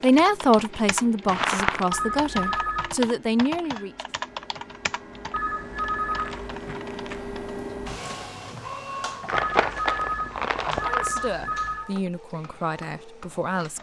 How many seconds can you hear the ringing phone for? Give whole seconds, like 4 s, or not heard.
5 s.